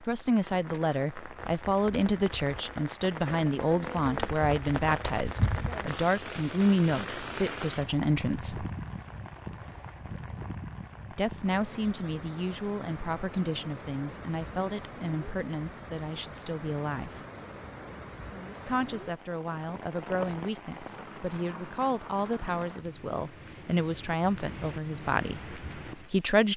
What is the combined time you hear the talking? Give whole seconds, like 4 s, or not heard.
23 s.